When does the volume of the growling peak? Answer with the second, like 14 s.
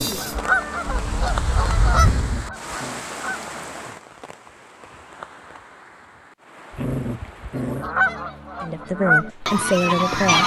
7 s.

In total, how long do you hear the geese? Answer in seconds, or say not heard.
6 s.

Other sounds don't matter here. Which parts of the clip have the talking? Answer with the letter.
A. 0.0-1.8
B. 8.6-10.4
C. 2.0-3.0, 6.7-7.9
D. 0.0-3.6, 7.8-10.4
B.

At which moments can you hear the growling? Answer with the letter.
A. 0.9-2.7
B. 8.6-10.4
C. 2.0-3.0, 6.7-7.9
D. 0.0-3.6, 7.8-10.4
C.